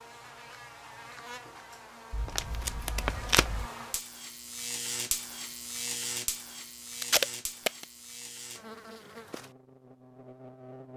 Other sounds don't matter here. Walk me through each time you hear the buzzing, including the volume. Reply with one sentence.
The buzzing can be heard from 0.0 to 10.9 s, getting louder then quieter.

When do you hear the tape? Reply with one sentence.
The tape can be heard from 2.1 to 3.6 s and from 7.0 to 7.8 s.